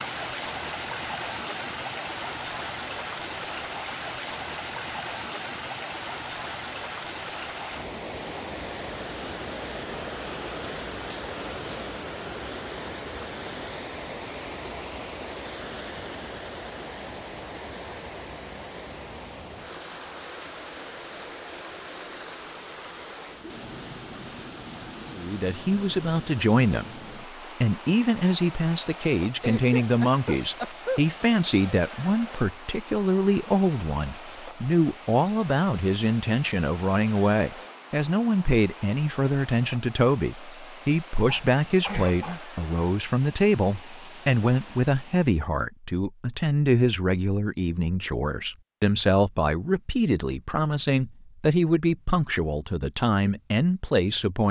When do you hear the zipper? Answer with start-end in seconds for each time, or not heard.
not heard.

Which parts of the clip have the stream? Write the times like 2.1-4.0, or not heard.
0.0-45.5.